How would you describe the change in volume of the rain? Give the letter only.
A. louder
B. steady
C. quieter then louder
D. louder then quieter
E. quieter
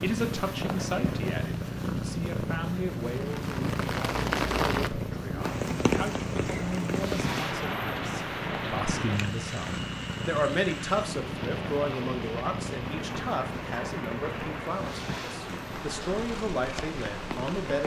E.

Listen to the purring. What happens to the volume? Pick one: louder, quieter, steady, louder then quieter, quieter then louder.
quieter.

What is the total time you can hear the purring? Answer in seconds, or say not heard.
18 s.